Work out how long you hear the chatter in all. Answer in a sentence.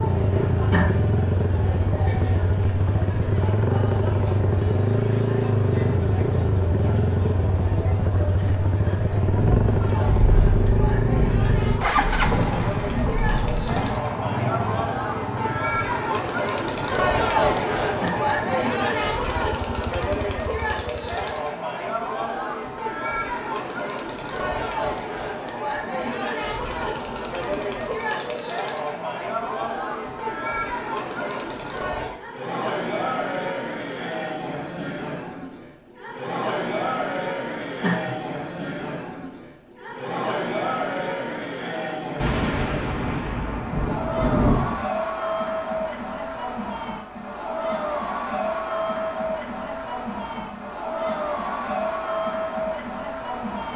The chatter can be heard for 54 seconds in total.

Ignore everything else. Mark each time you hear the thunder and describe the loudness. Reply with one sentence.
The thunder can be heard from 9.2 to 14.0 s, at a steady volume; and briefly from 42.1 to 44.8 s.